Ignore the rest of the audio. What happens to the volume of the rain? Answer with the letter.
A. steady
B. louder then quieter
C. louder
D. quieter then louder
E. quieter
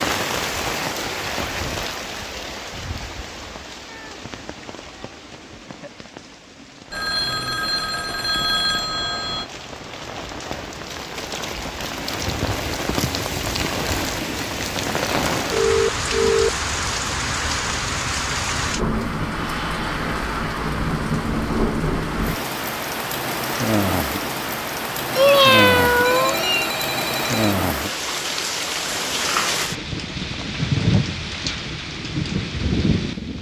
C.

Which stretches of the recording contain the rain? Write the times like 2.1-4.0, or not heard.
0.0-33.3.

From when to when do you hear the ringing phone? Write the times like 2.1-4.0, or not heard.
6.9-9.4, 15.5-16.6, 26.0-27.6.